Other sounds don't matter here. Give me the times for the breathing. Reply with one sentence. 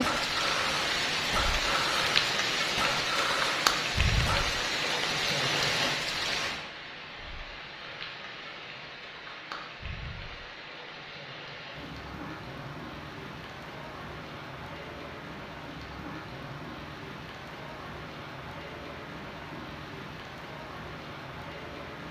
You can hear the breathing from 0.0 to 4.5 s.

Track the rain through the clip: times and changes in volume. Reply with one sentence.
The rain can be heard from 0.0 to 22.0 s, getting quieter.